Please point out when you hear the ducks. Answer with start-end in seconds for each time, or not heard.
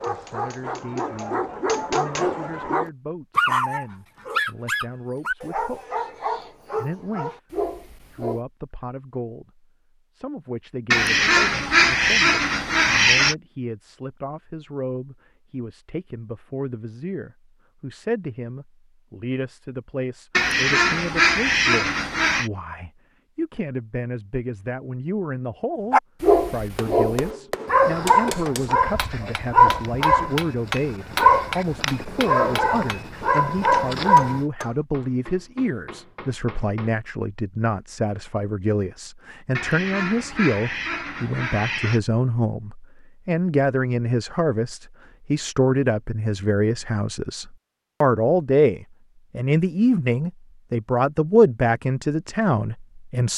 10.9-13.3, 20.3-22.5, 39.5-42.0.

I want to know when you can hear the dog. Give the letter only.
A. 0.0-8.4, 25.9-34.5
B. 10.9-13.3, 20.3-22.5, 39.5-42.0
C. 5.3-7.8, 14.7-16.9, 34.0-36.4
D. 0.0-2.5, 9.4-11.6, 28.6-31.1
A.